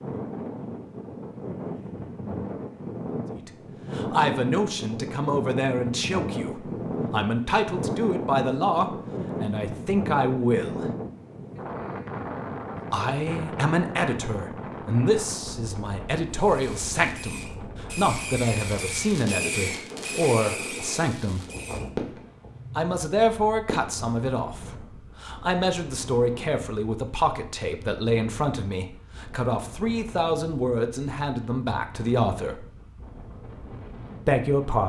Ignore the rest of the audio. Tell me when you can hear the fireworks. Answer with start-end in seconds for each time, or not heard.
16.3-22.6, 23.6-24.1.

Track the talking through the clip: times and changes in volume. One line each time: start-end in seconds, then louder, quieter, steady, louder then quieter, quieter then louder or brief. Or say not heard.
3.5-10.8 steady
12.9-21.4 steady
22.8-32.7 steady
34.2-34.8 brief.